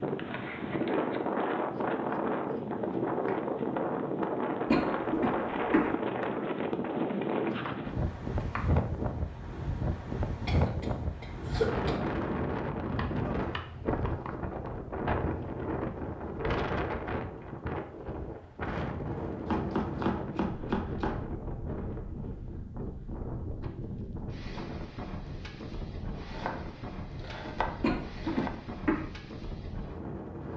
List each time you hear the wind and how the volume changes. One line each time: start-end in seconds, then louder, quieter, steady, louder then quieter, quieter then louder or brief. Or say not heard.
0.0-30.5 quieter.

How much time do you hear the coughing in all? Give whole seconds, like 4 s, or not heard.
4 s.